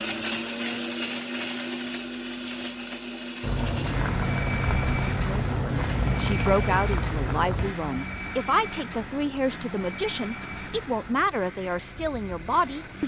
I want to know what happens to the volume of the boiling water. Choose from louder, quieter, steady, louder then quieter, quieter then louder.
quieter.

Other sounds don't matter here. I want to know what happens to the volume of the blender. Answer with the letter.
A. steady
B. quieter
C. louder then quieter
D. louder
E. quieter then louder
B.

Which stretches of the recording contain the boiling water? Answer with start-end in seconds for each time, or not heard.
3.4-13.0.